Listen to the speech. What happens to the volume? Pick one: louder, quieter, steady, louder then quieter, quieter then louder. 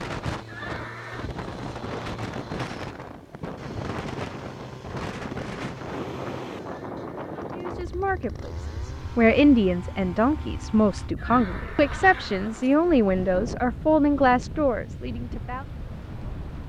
steady.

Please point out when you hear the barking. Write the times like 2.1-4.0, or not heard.
not heard.